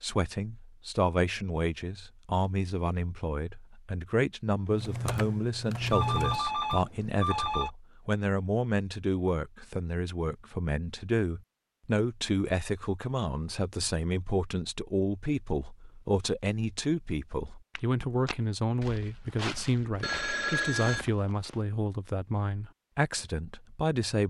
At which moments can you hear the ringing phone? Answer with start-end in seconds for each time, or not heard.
5.9-7.7, 20.0-21.1.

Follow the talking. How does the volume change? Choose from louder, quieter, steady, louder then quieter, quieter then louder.
steady.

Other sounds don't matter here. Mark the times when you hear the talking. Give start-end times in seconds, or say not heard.
0.0-24.2.